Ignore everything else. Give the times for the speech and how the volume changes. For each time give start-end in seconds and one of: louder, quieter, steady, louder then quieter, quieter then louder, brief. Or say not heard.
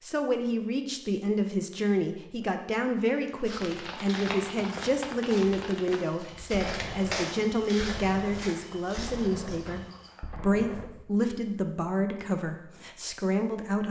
0.0-13.8 steady.